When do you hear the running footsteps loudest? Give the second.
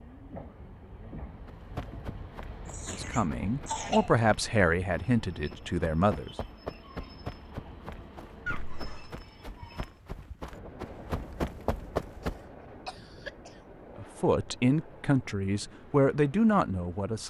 12 s.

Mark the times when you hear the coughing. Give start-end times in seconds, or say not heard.
2.6-4.2, 8.4-9.2, 12.2-13.6.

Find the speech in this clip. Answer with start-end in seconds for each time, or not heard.
2.9-6.3, 13.9-17.2.